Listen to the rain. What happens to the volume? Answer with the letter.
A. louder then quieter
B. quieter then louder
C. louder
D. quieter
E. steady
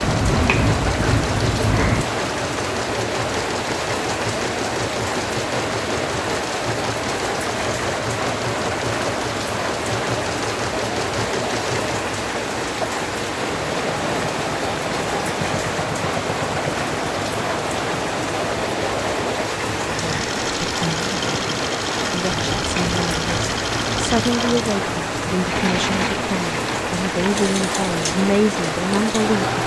E.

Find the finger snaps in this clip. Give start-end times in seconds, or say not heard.
0.0-2.0, 22.4-24.3.